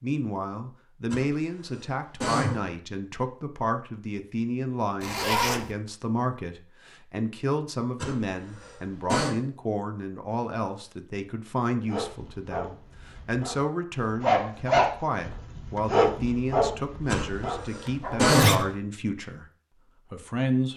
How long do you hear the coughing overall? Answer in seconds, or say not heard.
5 s.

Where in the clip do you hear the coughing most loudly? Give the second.
18 s.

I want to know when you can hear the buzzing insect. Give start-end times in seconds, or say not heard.
not heard.